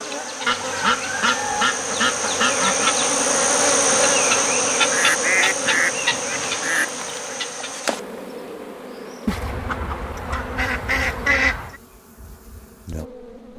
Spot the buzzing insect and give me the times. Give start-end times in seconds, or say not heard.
0.0-13.5.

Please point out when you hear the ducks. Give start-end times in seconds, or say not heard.
0.5-3.0, 4.9-7.3, 9.2-11.8.